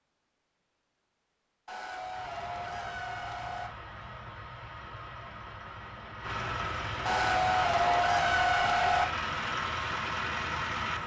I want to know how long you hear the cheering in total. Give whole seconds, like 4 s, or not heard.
4 s.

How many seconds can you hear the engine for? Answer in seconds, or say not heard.
9 s.